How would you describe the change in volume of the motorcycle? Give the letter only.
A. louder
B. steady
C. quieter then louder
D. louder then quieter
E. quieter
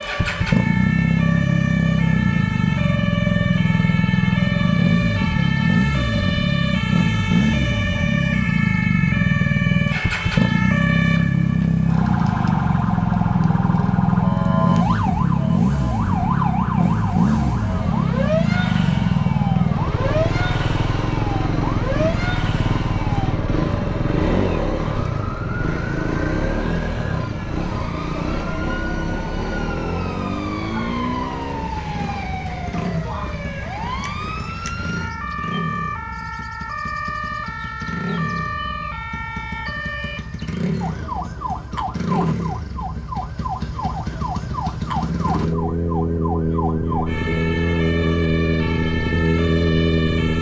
C.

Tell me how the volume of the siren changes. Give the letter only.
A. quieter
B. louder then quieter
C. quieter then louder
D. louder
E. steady
E.